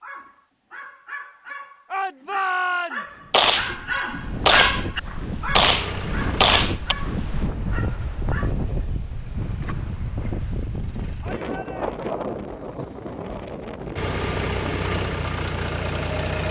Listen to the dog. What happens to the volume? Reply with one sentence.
The loudness of the dog goes up, then down.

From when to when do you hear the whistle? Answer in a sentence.
The whistle can't be heard in this clip.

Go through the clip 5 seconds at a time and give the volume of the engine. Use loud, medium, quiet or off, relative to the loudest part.
off, medium, loud, loud.